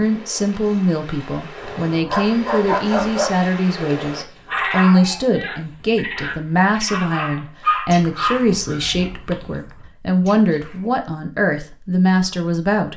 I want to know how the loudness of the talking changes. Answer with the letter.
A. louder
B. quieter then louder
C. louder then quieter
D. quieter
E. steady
E.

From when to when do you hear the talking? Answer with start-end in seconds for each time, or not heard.
0.0-12.9.